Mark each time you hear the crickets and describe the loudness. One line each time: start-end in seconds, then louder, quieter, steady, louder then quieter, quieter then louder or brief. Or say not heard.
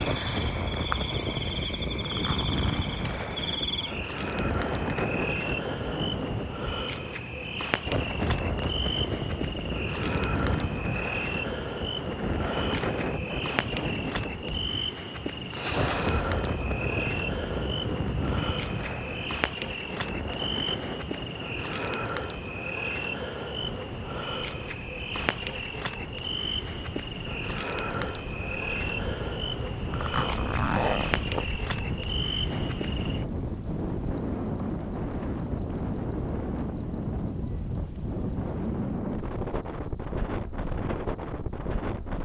0.0-42.2 steady.